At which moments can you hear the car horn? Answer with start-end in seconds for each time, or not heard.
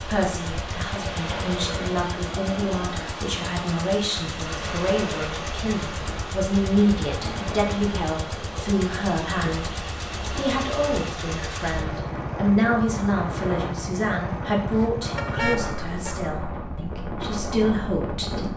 15.2-16.1.